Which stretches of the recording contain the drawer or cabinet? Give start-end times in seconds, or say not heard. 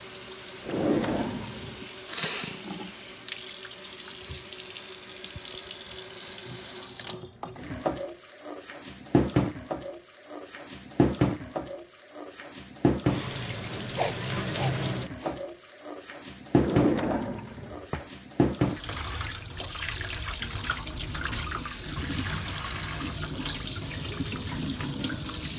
0.7-1.8, 16.6-18.1.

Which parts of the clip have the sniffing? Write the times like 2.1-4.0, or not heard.
1.6-2.6, 13.9-15.3.